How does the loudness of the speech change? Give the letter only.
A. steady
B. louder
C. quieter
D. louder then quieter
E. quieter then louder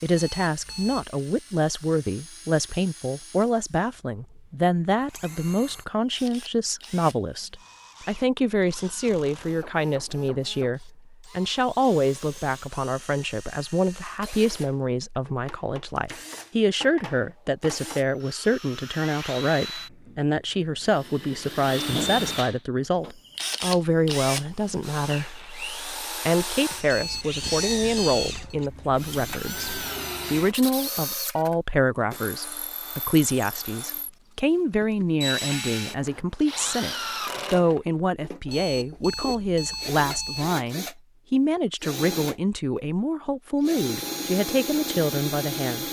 A.